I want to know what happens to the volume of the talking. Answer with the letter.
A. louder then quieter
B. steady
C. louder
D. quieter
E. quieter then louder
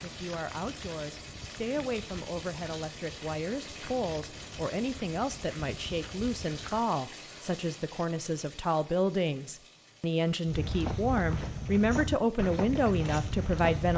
C.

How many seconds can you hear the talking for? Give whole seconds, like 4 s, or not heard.
14 s.